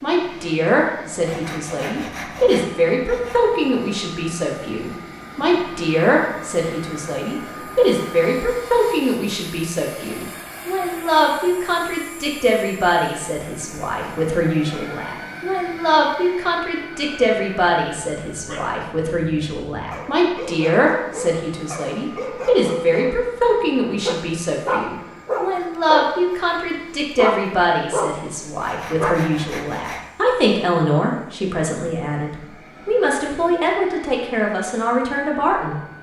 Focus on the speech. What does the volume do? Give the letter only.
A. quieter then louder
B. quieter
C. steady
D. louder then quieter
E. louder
C.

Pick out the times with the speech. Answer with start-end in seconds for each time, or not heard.
0.0-35.8.